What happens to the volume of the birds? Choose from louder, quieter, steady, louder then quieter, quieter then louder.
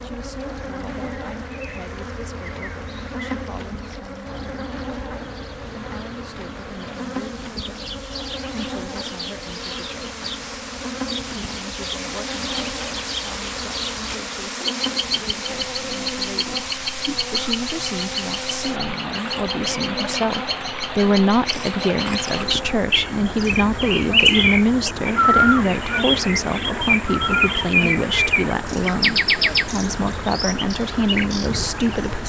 louder.